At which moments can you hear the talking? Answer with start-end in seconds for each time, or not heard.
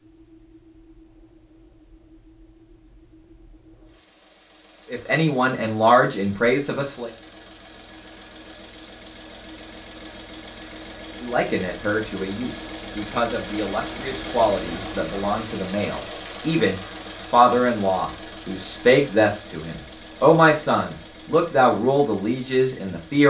4.9-7.1, 11.2-23.2.